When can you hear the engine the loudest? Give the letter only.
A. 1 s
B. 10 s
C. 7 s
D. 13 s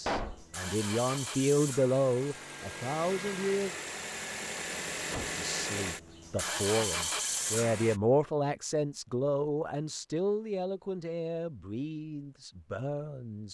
C.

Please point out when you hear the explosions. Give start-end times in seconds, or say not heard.
0.1-0.5.